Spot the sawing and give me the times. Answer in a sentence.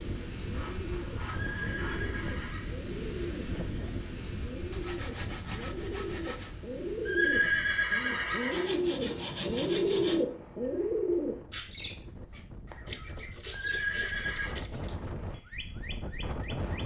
The sawing can be heard from 0.5 to 2.4 s, from 4.7 to 6.5 s, from 8.5 to 10.2 s and from 12.8 to 14.9 s.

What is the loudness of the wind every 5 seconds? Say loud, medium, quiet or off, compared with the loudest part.
loud, medium, medium, loud.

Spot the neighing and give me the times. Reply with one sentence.
The neighing can be heard from 1.2 to 2.8 s, from 7.0 to 8.8 s and from 13.5 to 14.6 s.